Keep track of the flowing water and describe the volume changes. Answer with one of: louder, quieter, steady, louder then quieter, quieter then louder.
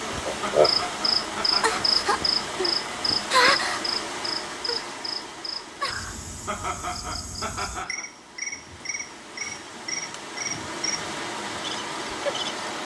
quieter then louder.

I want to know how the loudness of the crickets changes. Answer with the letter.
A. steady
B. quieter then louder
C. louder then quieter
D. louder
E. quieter
E.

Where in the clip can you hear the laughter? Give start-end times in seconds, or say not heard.
0.4-1.9, 6.5-8.1.